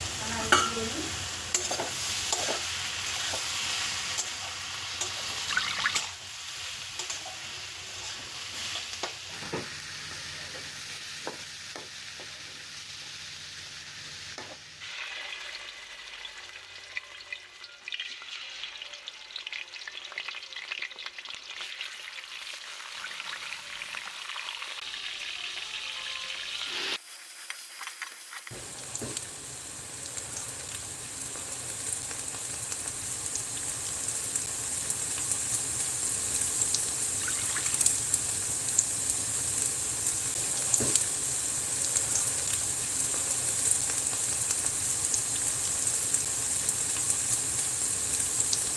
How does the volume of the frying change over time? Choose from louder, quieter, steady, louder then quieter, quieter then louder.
quieter then louder.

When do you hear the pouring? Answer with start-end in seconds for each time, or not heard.
5.5-6.1, 22.9-24.2, 37.1-37.8.